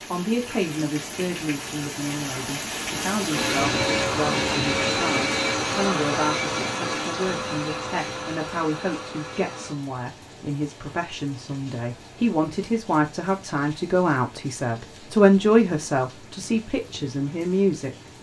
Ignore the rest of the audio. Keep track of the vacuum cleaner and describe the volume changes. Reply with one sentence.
The loudness of the vacuum cleaner goes down.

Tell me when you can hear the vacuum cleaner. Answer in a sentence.
The vacuum cleaner can be heard from 3.3 to 9.8 s.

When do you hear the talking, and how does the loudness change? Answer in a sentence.
You can hear the talking from 0.1 to 17.9 s, getting louder.